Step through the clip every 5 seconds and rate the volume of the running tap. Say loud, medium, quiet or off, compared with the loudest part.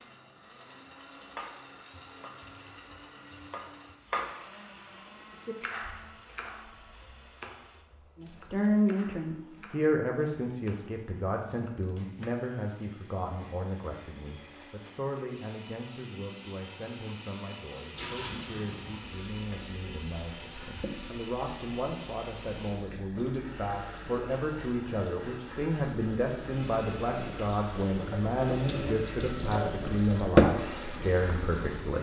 off, off, off, quiet, quiet, quiet, loud.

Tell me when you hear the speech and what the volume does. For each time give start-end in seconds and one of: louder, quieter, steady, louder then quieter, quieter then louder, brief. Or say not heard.
8.2-31.9 quieter then louder.